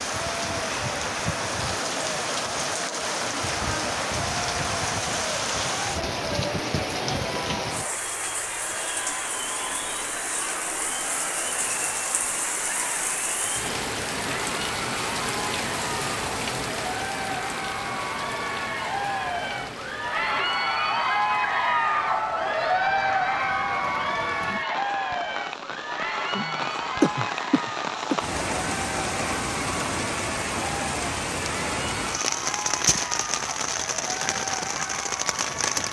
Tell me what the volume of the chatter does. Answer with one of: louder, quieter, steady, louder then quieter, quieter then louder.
louder then quieter.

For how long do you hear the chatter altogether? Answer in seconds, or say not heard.
36 s.